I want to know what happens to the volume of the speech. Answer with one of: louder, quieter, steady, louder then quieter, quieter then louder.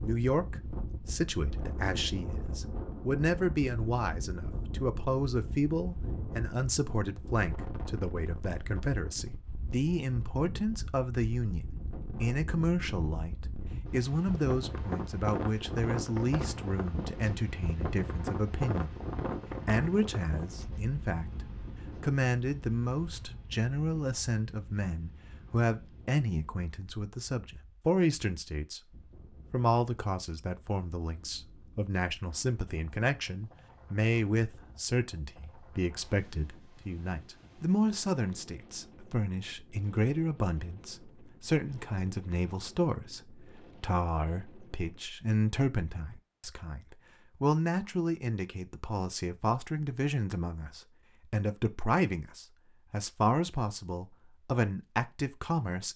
steady.